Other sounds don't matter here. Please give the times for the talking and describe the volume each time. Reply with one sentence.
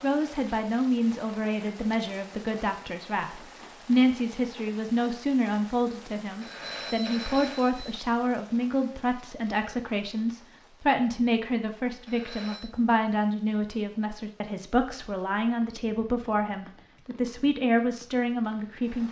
The talking can be heard from 0.0 to 19.0 s, at a steady volume.